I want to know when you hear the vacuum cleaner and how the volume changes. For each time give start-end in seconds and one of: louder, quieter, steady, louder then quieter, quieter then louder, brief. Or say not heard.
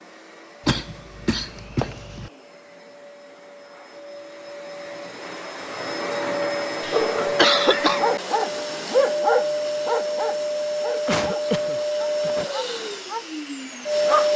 0.0-14.3 louder.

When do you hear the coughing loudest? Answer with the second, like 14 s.
8 s.